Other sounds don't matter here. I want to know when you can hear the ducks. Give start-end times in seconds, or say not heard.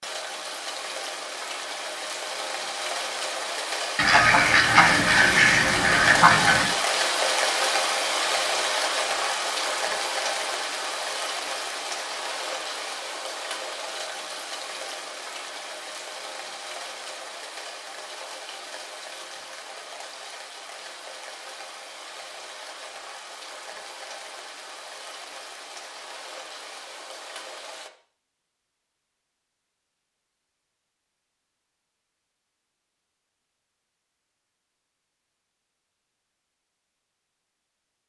4.0-6.8.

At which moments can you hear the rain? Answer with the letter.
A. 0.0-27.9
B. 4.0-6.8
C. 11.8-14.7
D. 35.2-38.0
A.